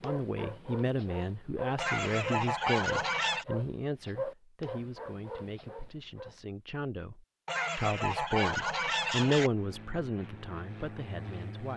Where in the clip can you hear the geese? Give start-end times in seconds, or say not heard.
1.8-3.5, 7.5-9.5.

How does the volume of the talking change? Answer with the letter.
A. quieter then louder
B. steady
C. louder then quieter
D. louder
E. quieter
A.